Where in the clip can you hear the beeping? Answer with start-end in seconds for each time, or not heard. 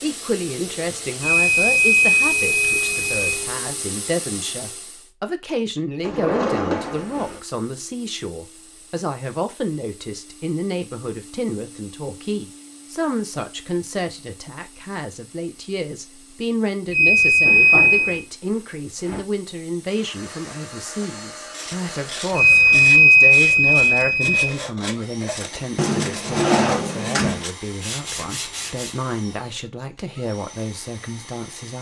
1.2-3.5, 16.9-18.2, 22.3-24.5.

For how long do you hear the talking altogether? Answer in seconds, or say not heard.
32 s.